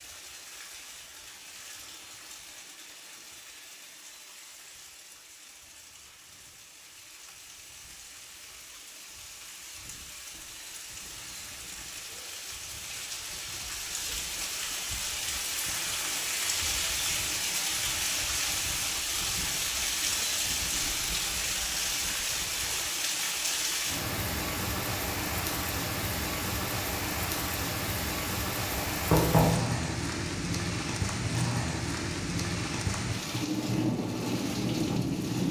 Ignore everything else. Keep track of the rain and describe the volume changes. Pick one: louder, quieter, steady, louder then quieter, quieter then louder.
louder.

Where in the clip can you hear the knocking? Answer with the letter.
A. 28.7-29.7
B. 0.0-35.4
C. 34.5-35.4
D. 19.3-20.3
A.